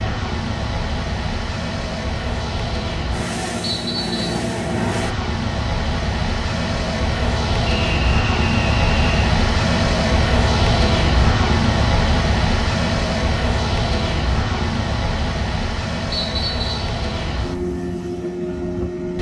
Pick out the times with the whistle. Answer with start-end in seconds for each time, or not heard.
3.6-4.4, 7.7-9.3, 16.1-16.8.